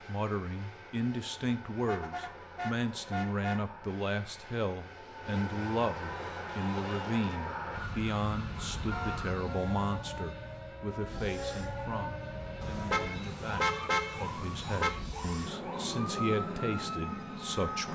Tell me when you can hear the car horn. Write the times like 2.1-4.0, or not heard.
1.9-3.6, 8.9-9.9, 12.6-14.9.